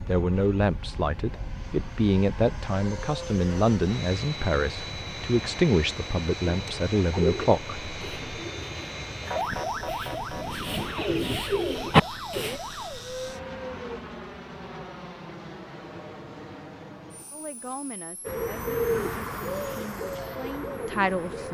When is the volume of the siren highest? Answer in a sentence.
The volume of the siren peaks at 10 seconds.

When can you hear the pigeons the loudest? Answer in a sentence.
The loudest moment of the pigeons is at 12 seconds.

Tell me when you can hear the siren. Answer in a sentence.
The siren can be heard from 9.2 to 14.0 s.